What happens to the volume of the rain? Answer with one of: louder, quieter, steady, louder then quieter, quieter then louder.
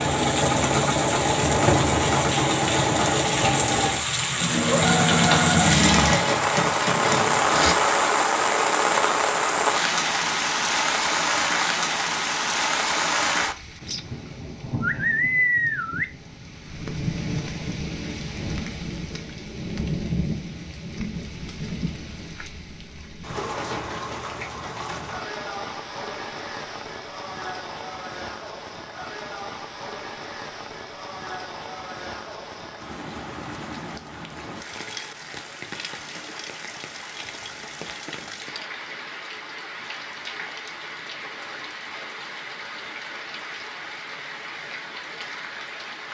quieter.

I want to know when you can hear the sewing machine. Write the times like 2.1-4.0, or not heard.
0.0-7.8.